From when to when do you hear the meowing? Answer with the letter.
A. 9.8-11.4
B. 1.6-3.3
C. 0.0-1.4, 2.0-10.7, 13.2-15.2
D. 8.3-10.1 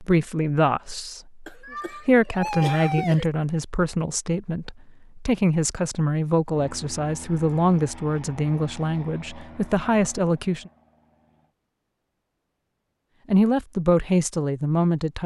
B.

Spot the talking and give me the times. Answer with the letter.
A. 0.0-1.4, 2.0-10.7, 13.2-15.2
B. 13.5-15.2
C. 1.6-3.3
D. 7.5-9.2
A.